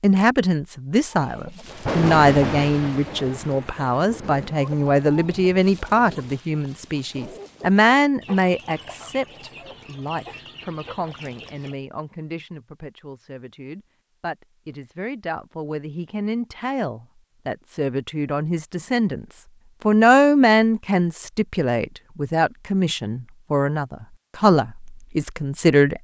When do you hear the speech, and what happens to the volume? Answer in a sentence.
The speech can be heard from 0.0 to 25.9 s, getting quieter then louder.